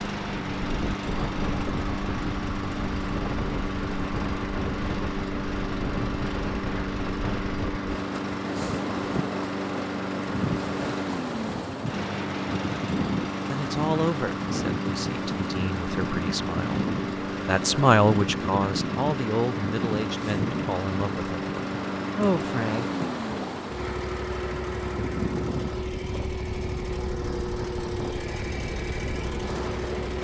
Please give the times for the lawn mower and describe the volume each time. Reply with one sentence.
The lawn mower can be heard from 0.0 to 30.1 s, at a steady volume.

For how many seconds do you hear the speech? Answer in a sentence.
You can hear the speech for 8 seconds altogether.